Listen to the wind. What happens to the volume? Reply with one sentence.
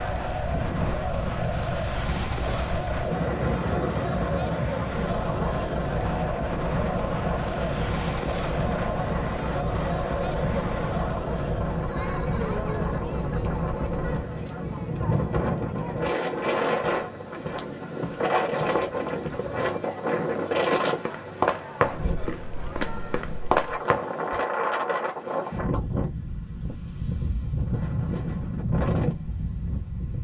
The loudness of the wind stays about the same.